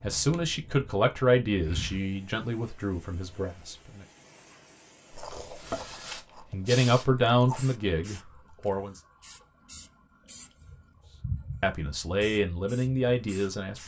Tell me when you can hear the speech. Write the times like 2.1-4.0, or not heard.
0.0-4.0, 6.5-9.0, 11.6-13.8.